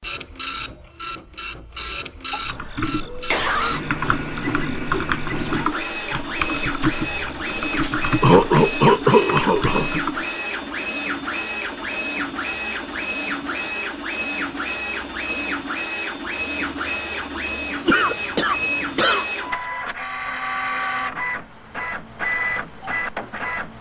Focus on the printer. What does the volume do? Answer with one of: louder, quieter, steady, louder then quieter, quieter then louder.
steady.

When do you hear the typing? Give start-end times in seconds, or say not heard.
2.4-10.2.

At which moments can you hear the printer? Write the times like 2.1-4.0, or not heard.
0.0-23.7.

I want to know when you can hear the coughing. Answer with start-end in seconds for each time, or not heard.
2.3-3.9, 8.2-9.9, 17.9-19.2.